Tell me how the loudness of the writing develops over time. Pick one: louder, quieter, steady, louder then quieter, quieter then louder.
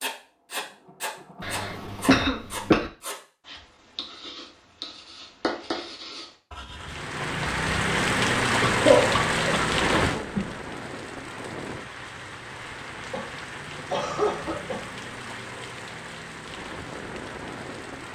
quieter then louder.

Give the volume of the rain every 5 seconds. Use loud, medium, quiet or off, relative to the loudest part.
off, loud, medium, quiet.